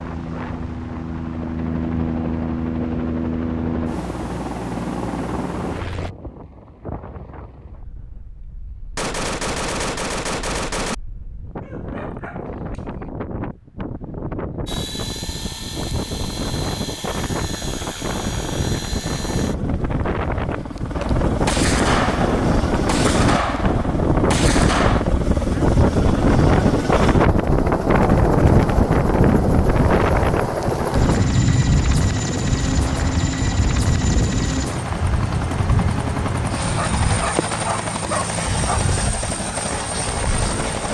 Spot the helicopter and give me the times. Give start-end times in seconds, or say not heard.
0.0-6.2, 14.7-40.8.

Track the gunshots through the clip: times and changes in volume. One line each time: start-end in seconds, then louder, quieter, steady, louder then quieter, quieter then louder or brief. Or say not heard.
8.9-10.9 brief
20.9-25.1 steady.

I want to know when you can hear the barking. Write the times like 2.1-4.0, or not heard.
11.6-13.1, 36.8-38.8.